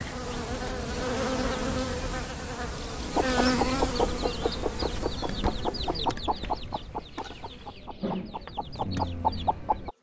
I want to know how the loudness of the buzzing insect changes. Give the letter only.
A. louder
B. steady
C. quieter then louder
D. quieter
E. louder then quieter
C.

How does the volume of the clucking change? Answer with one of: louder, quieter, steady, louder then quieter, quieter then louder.
quieter then louder.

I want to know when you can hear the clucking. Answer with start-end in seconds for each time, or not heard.
3.1-9.9.